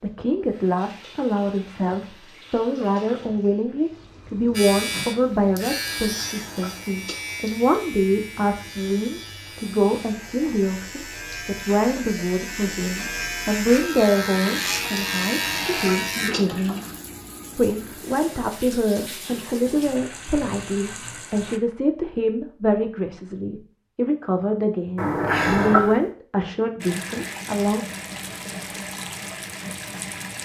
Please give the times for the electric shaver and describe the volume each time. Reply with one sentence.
You can hear the electric shaver from 4.5 to 16.3 s, getting quieter then louder.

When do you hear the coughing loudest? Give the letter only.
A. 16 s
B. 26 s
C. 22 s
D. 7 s
B.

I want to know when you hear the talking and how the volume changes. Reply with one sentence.
The talking can be heard from 0.0 to 16.9 s, at a steady volume; and from 17.6 to 27.8 s, at a steady volume.